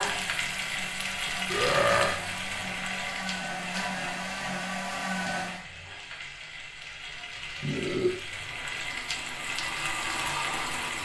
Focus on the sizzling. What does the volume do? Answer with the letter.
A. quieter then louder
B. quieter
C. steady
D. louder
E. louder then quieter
A.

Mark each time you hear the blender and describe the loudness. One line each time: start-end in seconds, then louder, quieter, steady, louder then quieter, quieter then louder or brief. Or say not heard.
0.0-5.7 louder
8.2-10.9 brief.